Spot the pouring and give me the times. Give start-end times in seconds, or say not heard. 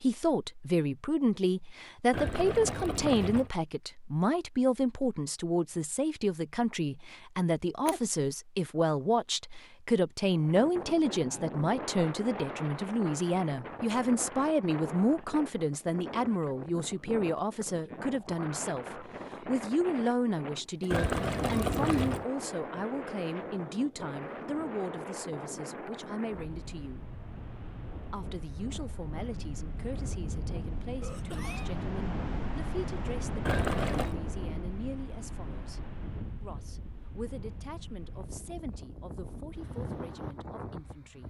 2.1-3.5, 20.9-22.2, 33.5-34.1.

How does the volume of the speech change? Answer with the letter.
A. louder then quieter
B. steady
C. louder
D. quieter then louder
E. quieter
E.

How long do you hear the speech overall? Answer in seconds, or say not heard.
40 s.